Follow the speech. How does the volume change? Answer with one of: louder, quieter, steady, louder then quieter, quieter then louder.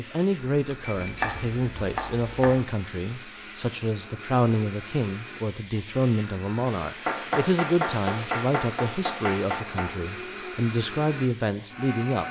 steady.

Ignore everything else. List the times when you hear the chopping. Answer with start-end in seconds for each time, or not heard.
0.9-2.6, 7.0-9.9.